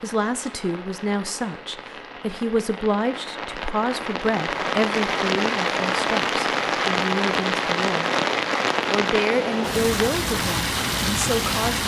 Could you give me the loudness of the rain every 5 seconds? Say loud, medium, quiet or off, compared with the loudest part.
medium, loud, loud.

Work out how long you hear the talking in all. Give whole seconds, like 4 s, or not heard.
11 s.